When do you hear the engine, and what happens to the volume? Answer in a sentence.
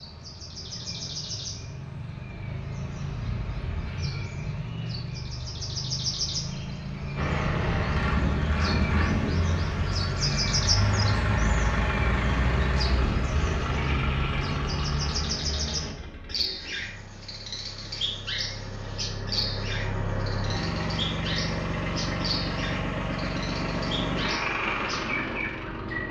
You can hear the engine from 7.2 to 26.0 s, getting quieter then louder.